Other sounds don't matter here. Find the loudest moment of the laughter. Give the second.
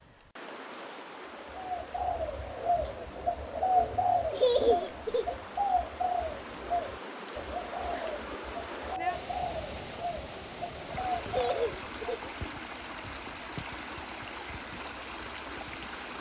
5 s.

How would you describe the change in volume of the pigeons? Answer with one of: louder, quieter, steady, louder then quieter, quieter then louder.
quieter.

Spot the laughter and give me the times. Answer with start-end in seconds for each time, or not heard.
4.3-5.4, 11.2-12.3.